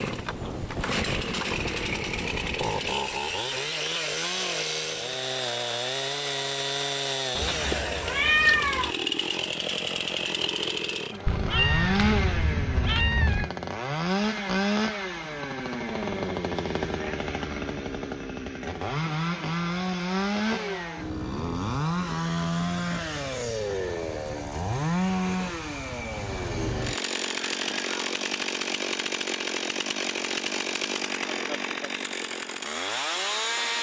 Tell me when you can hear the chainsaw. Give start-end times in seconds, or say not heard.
0.0-33.7.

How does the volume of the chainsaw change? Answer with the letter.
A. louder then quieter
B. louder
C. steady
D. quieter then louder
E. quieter
C.